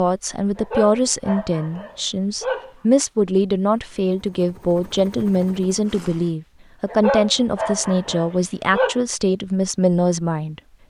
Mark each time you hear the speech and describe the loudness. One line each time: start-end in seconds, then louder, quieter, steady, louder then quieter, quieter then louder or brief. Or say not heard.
0.0-10.6 steady.